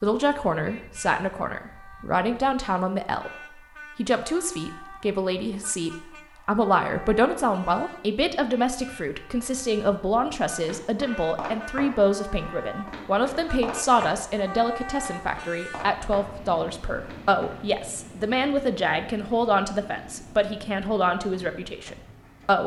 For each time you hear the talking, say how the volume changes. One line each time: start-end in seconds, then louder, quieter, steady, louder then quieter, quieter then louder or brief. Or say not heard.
0.0-22.6 steady.